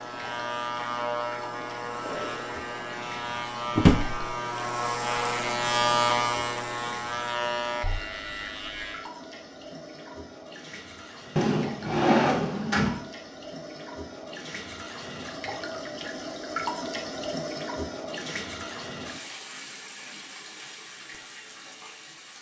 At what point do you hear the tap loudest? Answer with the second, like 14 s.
17 s.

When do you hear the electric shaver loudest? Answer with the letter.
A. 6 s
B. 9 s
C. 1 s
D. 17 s
A.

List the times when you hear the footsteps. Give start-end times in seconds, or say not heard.
not heard.